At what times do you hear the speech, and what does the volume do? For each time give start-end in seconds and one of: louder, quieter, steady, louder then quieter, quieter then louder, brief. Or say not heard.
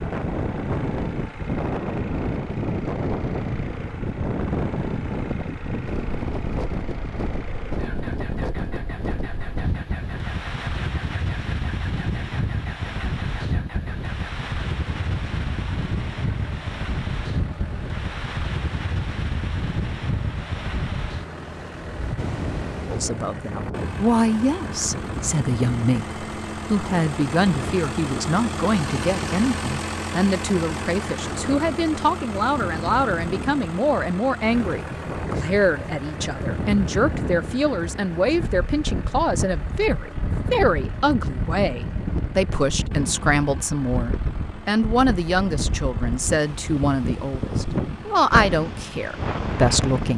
22.9-50.1 steady.